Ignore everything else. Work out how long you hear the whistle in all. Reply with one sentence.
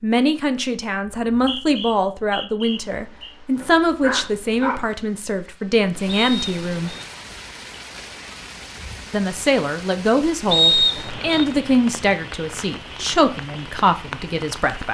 The whistle can be heard for 4 seconds in total.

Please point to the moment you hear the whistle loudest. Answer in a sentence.
The loudest moment of the whistle is at 11 seconds.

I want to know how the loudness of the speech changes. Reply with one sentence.
The volume of the speech stays about the same.